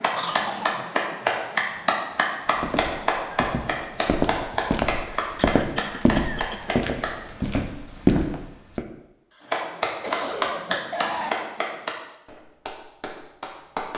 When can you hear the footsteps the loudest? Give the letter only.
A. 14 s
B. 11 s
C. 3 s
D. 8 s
D.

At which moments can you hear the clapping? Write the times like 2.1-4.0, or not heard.
0.0-7.3, 9.5-13.9.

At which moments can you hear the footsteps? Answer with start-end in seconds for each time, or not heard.
2.5-8.8.